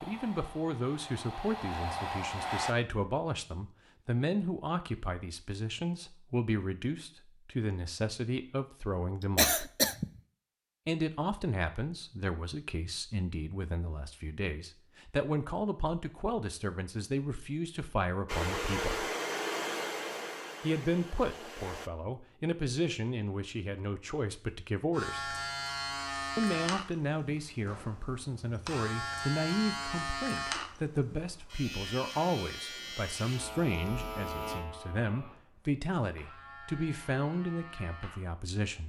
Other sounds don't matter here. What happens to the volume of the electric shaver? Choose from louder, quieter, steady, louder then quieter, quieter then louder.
quieter.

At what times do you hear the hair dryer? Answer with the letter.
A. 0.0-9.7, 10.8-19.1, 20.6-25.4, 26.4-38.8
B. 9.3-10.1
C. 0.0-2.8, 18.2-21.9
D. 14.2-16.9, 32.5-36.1
C.